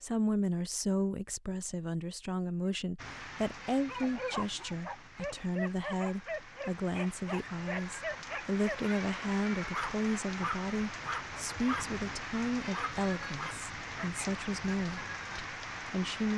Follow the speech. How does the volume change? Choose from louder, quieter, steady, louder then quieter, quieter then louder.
steady.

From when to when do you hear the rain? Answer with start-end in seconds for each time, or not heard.
3.0-16.3.